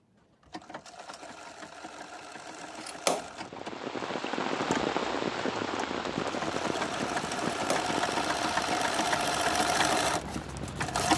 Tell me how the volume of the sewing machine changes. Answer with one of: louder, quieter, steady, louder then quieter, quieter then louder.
louder.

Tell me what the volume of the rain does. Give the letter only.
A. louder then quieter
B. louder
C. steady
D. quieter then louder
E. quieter
E.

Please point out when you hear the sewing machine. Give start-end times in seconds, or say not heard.
0.0-11.1.